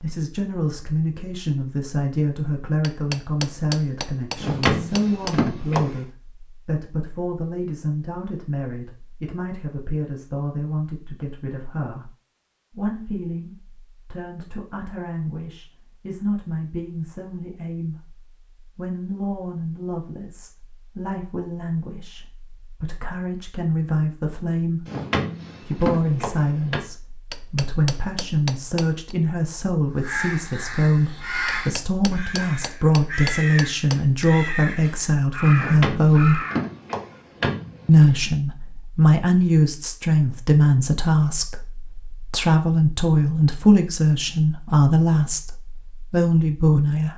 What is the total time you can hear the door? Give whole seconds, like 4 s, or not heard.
6 s.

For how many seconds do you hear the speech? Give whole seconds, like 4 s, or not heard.
44 s.